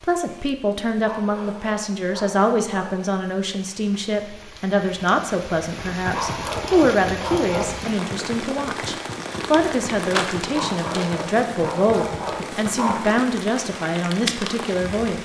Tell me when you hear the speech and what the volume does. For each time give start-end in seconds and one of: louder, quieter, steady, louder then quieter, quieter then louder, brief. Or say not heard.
0.0-15.2 steady.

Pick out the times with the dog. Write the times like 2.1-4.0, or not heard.
1.0-3.1, 6.1-7.8, 10.5-13.1.